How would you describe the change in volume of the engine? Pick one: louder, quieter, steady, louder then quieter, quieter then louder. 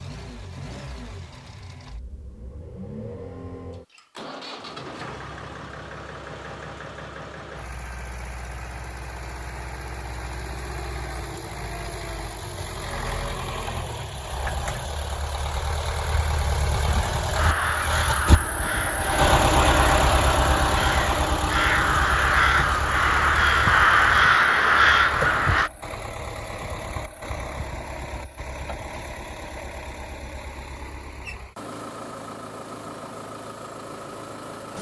louder then quieter.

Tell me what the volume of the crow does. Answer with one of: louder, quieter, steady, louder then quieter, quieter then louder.
louder.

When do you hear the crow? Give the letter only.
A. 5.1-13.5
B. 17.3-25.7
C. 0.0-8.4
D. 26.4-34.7
B.